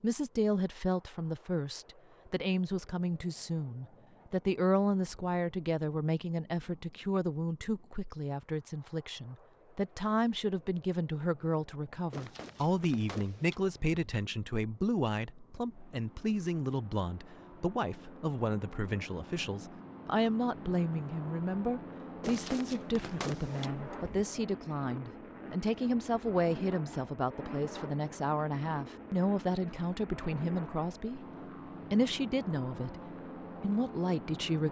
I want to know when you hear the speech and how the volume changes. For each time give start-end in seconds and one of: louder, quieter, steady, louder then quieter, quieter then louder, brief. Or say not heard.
0.0-31.2 steady
31.9-34.6 brief.